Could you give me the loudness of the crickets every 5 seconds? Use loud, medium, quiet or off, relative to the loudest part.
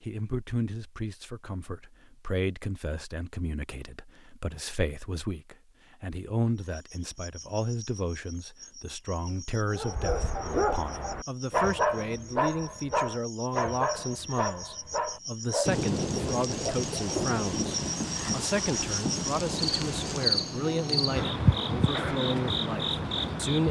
off, quiet, quiet, medium, loud.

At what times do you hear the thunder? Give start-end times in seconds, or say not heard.
15.7-20.3.